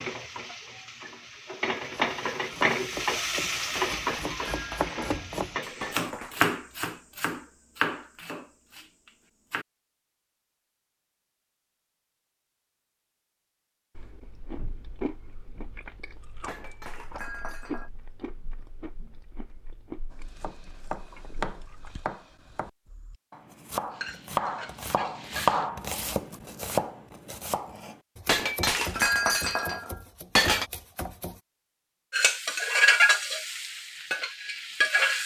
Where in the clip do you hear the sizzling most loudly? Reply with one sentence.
The volume of the sizzling peaks at 33 seconds.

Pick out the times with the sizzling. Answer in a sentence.
You can hear the sizzling from 0.0 to 6.1 s, from 23.9 to 25.7 s and from 32.1 to 35.2 s.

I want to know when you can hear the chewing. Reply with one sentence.
You can hear the chewing from 13.9 to 22.0 s.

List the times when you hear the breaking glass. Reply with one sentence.
You can hear the breaking glass from 3.8 to 6.4 s, from 16.4 to 17.9 s and from 28.2 to 30.6 s.